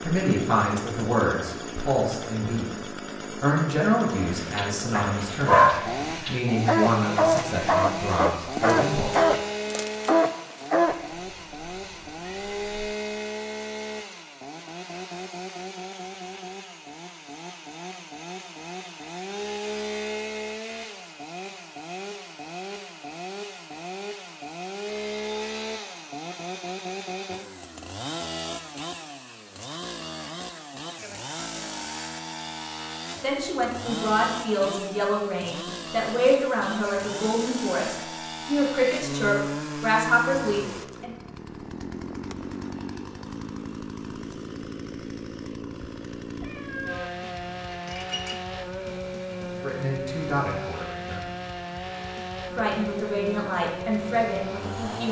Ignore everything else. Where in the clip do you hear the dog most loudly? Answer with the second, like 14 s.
6 s.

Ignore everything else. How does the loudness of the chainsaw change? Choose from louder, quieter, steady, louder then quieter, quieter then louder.
steady.